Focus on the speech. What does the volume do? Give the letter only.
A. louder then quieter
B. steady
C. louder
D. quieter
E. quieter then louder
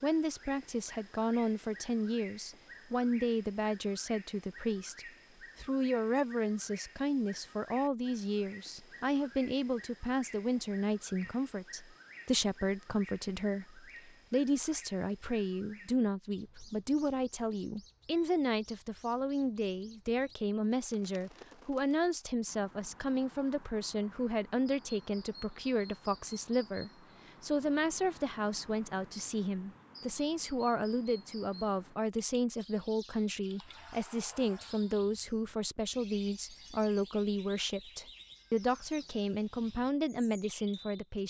B.